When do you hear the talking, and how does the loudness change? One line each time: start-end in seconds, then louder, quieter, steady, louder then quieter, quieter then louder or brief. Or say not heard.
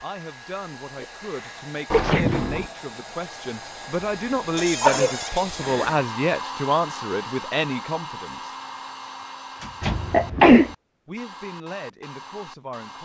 0.0-8.5 louder
11.1-13.0 brief.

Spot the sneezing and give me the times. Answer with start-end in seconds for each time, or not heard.
0.9-2.4, 4.6-6.0, 9.8-10.7.